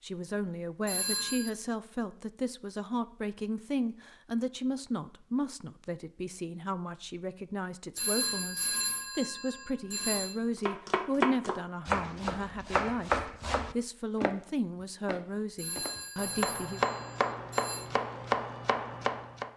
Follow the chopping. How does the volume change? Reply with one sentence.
The volume of the chopping goes down, then up.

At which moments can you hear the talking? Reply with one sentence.
You can hear the talking from 0.0 to 16.8 s.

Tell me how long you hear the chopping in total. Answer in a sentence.
You can hear the chopping for 9 seconds altogether.